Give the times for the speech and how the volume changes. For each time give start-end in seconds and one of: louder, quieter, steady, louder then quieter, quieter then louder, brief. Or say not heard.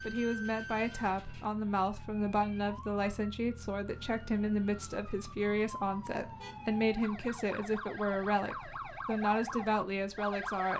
0.0-10.7 steady.